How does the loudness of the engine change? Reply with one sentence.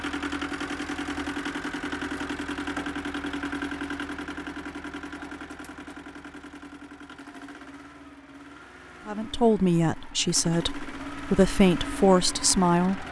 The volume of the engine goes down, then up.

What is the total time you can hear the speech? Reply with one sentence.
You can hear the speech for 4 seconds altogether.